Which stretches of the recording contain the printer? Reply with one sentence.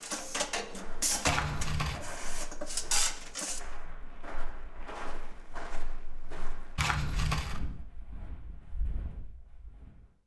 You can hear the printer from 0.0 to 3.6 s.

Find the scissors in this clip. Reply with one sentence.
The scissors can be heard from 1.2 to 2.0 s and from 6.8 to 7.6 s.